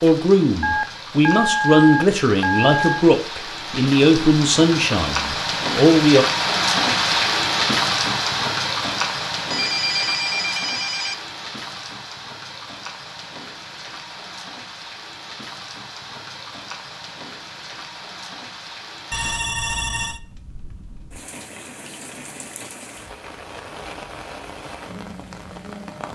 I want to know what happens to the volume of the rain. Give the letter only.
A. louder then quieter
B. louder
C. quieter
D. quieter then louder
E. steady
A.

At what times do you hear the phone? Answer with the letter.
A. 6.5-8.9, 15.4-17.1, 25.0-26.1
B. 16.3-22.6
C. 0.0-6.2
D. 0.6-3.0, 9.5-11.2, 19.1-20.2
D.